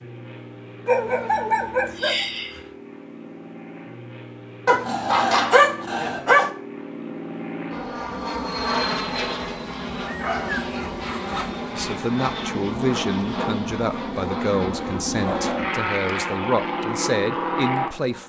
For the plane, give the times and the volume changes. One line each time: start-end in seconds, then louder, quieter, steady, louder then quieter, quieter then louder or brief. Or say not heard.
0.0-18.2 louder.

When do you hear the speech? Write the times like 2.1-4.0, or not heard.
11.7-18.2.